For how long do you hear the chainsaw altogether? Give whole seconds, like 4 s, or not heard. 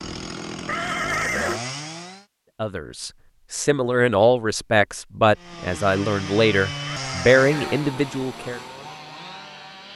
7 s.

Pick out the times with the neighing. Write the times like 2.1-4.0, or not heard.
0.7-1.6, 6.8-8.1.